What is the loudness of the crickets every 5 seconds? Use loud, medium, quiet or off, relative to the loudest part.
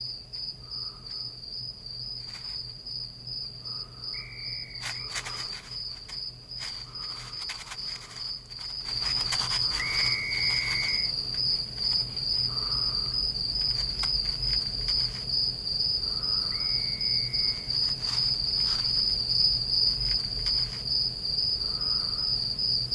medium, medium, loud, loud, loud.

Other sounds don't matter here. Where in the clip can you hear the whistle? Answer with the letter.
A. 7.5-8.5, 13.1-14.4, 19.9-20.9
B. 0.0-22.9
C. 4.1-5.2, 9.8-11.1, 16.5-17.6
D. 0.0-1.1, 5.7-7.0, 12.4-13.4
C.